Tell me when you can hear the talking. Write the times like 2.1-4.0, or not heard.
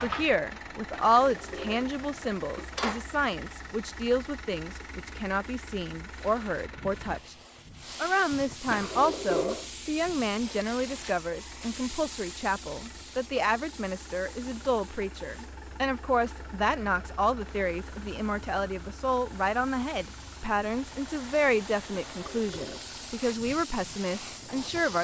0.0-7.3, 8.0-24.9.